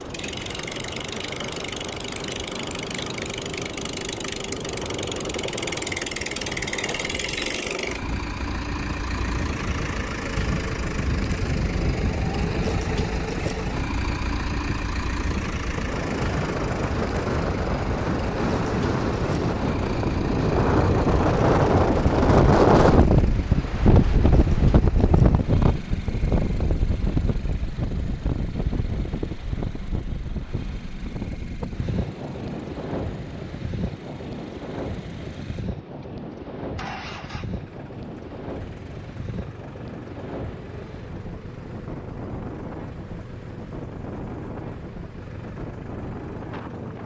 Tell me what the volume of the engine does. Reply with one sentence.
The loudness of the engine goes down.